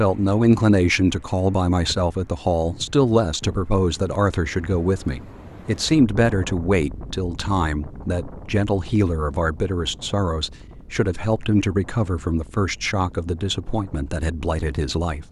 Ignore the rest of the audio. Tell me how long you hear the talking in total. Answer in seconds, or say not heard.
15 s.